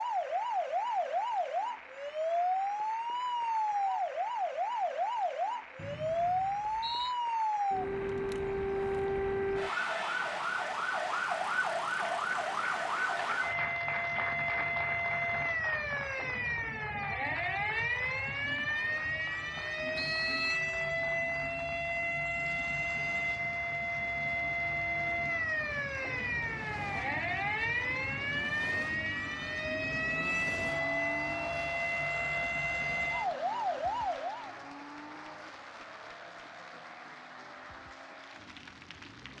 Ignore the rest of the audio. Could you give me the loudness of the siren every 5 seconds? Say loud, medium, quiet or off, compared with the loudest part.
loud, loud, loud, loud, loud, loud, loud, off.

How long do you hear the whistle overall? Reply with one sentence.
The whistle can be heard for 2 seconds in total.